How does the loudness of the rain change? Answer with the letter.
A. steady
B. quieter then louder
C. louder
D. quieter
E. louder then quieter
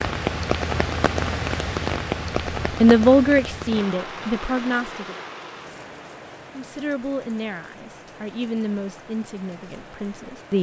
D.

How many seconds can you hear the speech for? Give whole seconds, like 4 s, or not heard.
6 s.